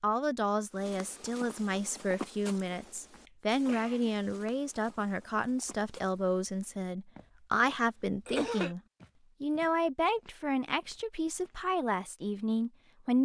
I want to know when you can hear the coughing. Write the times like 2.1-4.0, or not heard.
3.2-4.1, 8.2-8.8.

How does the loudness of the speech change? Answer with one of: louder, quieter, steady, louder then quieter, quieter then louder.
steady.